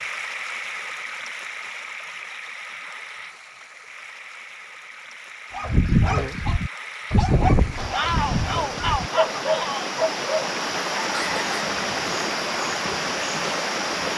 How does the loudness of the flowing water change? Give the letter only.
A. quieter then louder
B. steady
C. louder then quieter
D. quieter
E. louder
A.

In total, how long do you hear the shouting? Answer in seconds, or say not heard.
2 s.